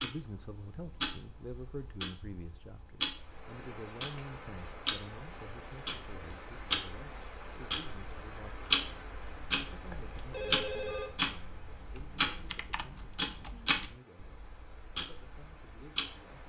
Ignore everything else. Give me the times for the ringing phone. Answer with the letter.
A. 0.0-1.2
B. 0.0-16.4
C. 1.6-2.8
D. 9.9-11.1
D.